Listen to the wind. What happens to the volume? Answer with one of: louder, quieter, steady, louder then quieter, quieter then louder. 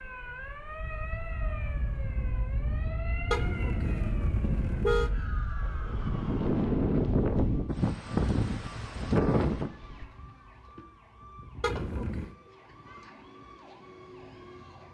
louder.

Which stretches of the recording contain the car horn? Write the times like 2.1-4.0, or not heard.
3.3-5.1, 11.6-12.3.